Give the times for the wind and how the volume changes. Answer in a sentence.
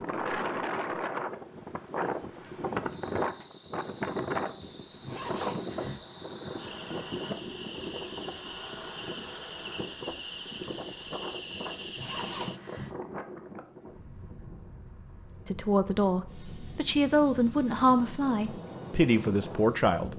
The wind can be heard from 0.0 to 20.1 s, getting quieter.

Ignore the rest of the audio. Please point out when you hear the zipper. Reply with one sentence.
The zipper can be heard from 4.6 to 6.0 s and from 11.8 to 12.9 s.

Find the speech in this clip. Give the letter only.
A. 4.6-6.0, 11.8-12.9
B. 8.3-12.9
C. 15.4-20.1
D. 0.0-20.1
C.